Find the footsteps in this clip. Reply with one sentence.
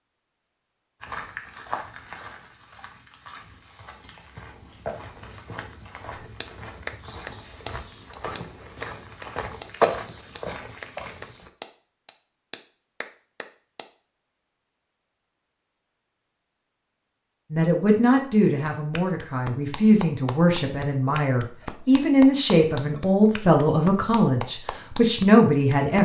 The footsteps can be heard from 1.0 to 11.5 s.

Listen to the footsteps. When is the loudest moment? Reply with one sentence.
The loudest moment of the footsteps is at 10 seconds.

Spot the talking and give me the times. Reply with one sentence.
The talking can be heard from 17.5 to 25.9 s.